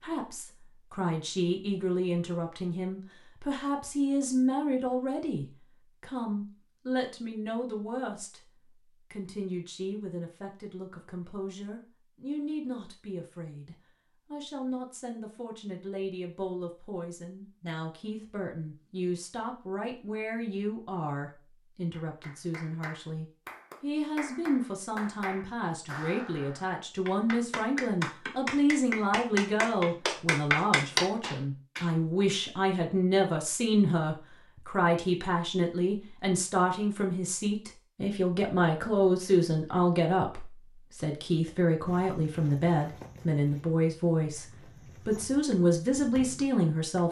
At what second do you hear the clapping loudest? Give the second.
31 s.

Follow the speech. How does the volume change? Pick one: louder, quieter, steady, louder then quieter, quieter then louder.
quieter then louder.